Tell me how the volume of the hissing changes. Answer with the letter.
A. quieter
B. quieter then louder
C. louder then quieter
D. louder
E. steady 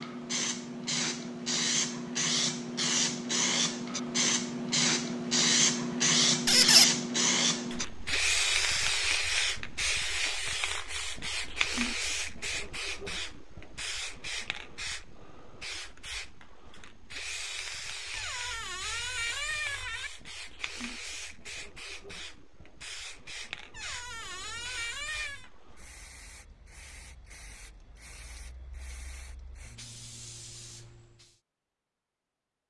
A.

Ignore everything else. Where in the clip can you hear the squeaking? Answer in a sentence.
The squeaking can be heard from 6.5 to 6.9 s, from 18.1 to 20.1 s and from 23.7 to 25.5 s.